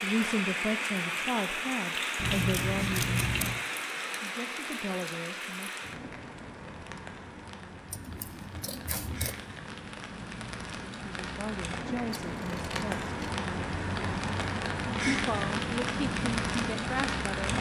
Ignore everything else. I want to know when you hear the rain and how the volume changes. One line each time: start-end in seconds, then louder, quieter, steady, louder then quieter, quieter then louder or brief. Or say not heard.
0.0-17.5 quieter then louder.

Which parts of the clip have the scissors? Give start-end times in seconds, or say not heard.
2.1-3.6, 7.9-9.4, 12.2-13.3.